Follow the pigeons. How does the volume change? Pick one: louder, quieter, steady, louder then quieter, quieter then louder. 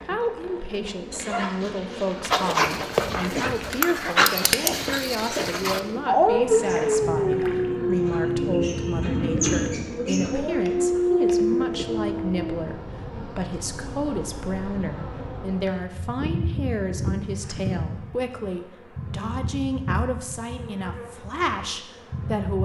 louder.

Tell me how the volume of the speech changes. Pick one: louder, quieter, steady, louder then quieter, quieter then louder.
steady.